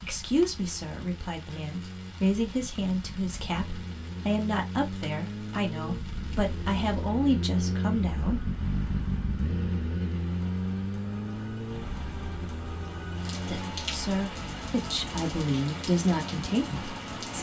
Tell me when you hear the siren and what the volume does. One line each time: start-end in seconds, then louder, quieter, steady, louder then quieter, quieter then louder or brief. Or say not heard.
not heard.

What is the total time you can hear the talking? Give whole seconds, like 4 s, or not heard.
12 s.